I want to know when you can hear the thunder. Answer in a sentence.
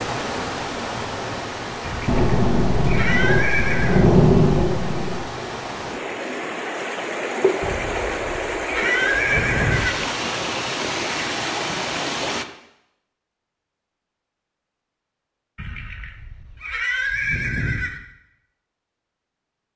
You can hear the thunder from 2.0 to 5.2 s.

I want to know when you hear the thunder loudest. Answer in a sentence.
The volume of the thunder peaks at 4 seconds.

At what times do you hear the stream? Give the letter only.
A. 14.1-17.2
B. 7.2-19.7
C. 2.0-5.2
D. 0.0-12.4
D.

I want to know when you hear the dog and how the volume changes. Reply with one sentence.
You can't hear the dog here.